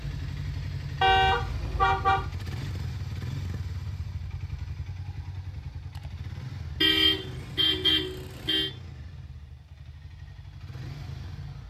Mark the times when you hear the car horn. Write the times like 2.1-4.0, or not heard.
1.0-2.3, 6.8-8.7.